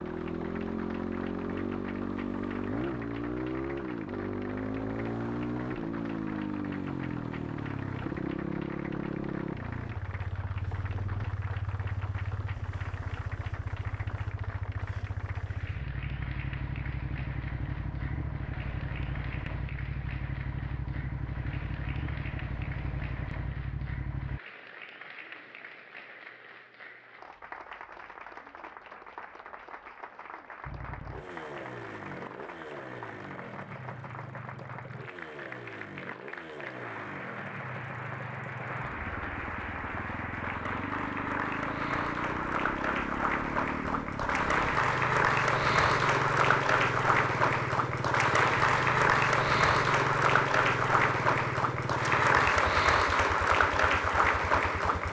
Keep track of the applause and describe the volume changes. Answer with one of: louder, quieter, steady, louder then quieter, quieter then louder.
louder.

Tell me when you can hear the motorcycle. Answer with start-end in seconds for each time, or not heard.
0.0-24.4, 30.6-55.0.